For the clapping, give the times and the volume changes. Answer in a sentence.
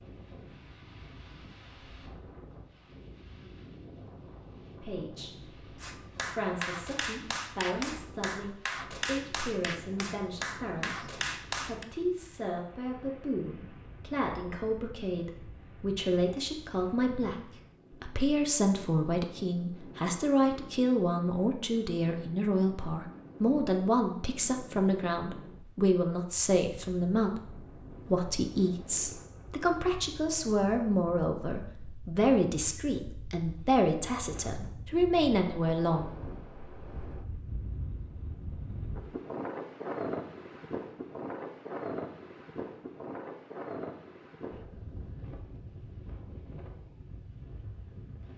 You can hear the clapping from 5.8 to 11.8 s, at a steady volume.